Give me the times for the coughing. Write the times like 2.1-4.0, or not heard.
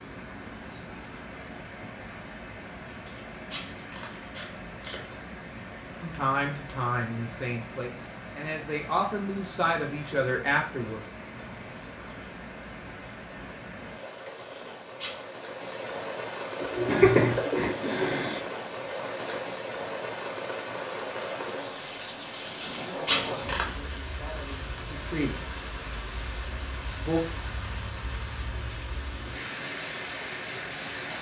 16.9-18.4.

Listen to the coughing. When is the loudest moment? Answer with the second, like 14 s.
17 s.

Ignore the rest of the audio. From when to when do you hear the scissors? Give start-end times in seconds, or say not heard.
2.9-5.0, 14.3-15.2, 22.4-23.9.